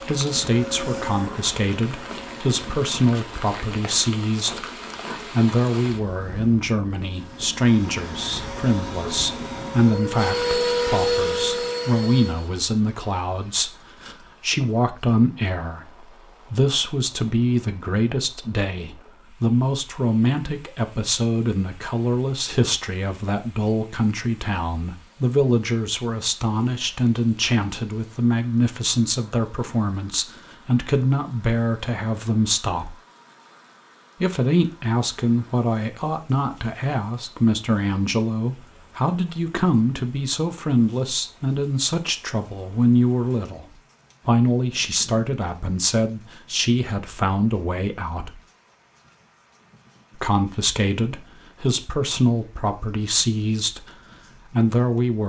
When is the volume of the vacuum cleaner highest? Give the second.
11 s.